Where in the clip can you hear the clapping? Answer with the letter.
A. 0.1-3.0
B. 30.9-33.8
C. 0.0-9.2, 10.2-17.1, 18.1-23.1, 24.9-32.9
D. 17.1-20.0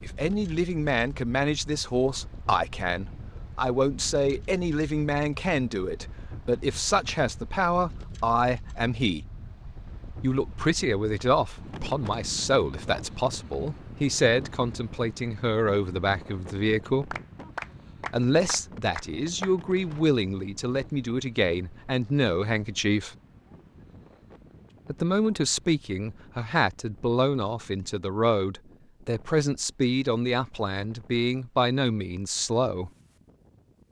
D.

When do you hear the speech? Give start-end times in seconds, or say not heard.
0.0-9.2, 10.2-17.1, 18.1-23.1, 24.9-32.9.